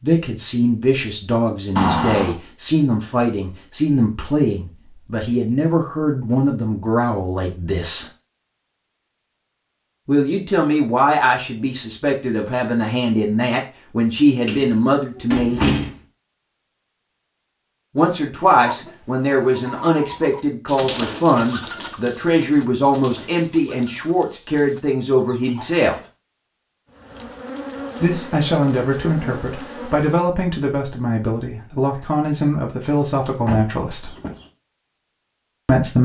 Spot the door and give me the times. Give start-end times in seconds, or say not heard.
1.8-2.4, 14.4-15.9, 33.5-34.5.